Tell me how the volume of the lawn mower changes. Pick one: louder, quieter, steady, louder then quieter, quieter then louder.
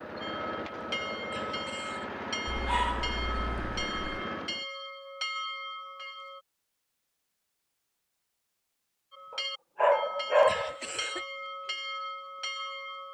steady.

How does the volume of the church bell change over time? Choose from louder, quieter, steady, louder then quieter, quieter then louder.
steady.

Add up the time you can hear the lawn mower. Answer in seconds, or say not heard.
5 s.